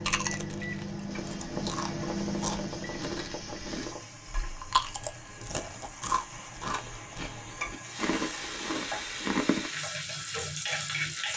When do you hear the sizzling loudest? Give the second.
11 s.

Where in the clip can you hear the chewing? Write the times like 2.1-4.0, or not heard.
0.0-9.7.